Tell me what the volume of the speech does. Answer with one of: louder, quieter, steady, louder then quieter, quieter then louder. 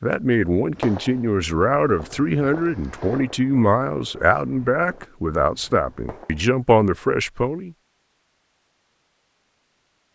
steady.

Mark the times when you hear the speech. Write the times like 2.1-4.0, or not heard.
0.0-7.8.